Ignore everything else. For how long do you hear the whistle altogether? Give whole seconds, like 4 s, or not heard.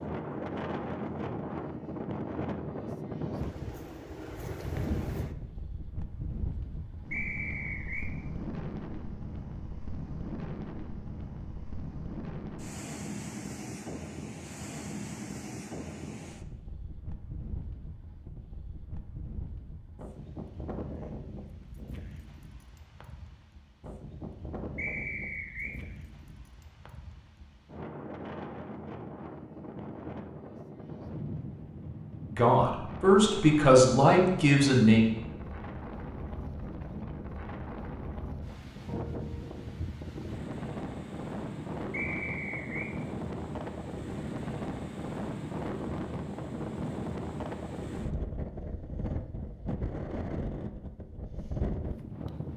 3 s.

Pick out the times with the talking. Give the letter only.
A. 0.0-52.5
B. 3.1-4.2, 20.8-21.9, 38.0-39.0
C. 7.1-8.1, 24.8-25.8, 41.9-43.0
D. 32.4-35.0
D.